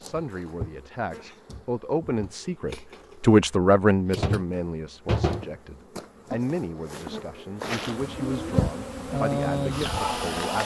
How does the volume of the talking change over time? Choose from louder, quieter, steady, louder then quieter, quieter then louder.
louder then quieter.